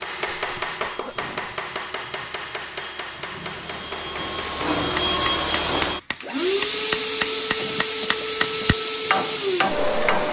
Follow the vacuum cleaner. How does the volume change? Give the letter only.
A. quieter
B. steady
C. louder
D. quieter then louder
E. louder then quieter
C.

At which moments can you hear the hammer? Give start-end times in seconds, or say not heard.
0.0-10.2.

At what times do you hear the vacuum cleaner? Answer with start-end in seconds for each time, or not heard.
0.0-10.2.